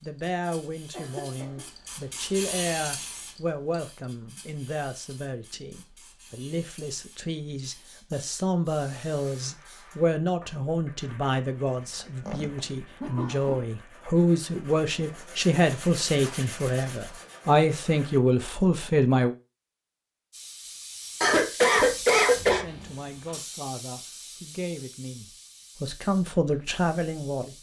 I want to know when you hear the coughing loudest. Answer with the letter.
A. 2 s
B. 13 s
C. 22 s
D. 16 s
C.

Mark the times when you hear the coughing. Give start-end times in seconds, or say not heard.
0.9-1.6, 11.8-13.7, 21.2-22.6.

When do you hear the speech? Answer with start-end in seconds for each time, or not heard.
0.0-19.4, 22.5-27.5.